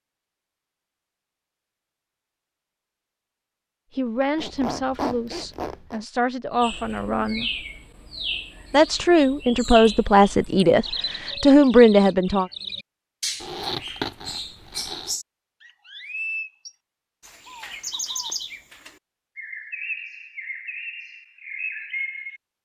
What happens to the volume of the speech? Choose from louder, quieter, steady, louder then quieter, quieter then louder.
louder.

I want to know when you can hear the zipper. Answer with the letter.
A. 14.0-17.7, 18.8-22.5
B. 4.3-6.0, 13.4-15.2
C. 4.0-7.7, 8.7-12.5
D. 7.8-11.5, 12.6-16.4
B.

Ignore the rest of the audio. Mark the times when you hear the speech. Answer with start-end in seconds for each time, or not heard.
4.0-7.7, 8.7-12.5.